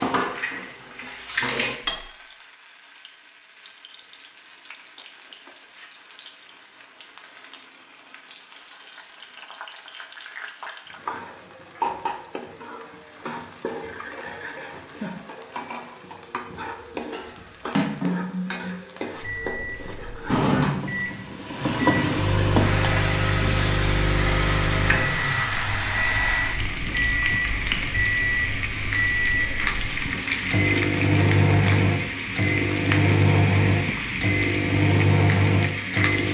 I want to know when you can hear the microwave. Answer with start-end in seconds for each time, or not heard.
19.2-36.3.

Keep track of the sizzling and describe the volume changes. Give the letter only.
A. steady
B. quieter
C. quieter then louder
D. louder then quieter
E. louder
E.